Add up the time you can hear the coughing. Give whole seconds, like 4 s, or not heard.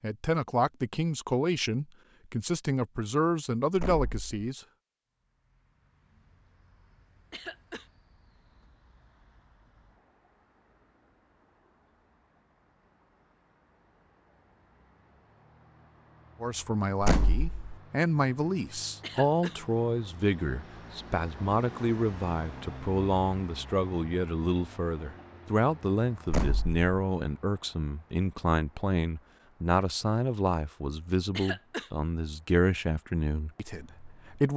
2 s.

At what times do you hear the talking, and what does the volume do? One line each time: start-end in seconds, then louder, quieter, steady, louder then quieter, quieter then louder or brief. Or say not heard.
0.0-4.6 steady
16.4-34.5 steady.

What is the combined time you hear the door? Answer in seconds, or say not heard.
2 s.